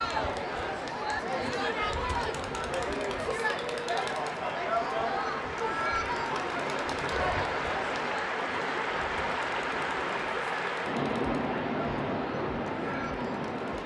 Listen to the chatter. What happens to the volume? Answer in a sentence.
The loudness of the chatter goes down.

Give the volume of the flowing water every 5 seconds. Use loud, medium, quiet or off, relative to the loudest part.
medium, loud, loud.